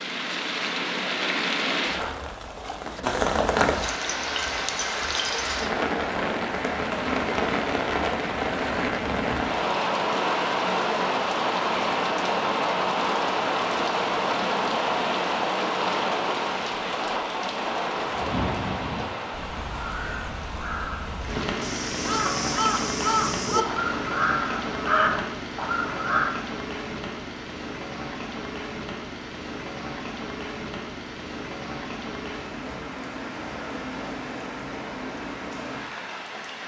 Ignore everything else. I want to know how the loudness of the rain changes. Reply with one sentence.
The volume of the rain goes down.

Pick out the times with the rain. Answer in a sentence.
The rain can be heard from 0.0 to 36.6 s.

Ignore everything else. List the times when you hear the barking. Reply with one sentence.
You can't hear the barking here.